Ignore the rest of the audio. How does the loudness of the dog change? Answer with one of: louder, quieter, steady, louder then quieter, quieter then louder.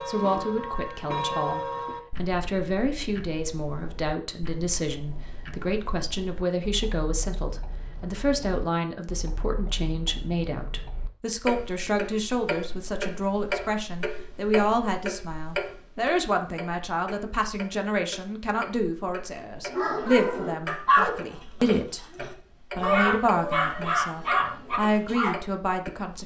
quieter then louder.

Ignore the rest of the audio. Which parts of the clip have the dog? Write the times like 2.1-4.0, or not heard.
19.6-25.4.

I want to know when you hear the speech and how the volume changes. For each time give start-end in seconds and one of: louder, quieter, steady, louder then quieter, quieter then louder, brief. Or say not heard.
0.1-26.2 steady.